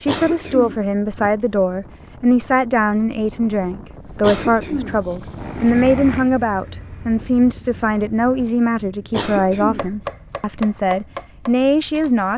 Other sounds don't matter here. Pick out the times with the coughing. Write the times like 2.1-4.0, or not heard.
0.1-1.3, 4.2-6.3, 9.1-10.0.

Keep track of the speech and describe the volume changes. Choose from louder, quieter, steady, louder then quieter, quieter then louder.
steady.